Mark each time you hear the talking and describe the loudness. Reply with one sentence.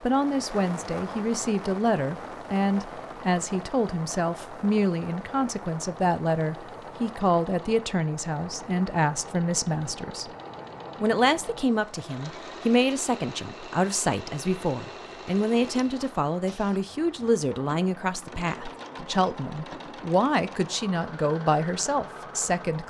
The talking can be heard from 0.0 to 10.3 s, at a steady volume; and from 11.0 to 22.8 s, at a steady volume.